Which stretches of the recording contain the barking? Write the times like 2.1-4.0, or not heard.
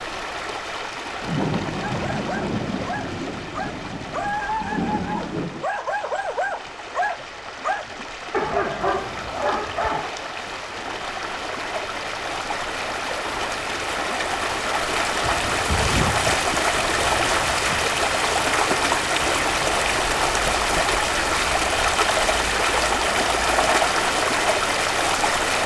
1.8-10.1.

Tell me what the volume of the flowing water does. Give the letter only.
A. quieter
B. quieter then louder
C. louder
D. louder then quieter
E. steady
C.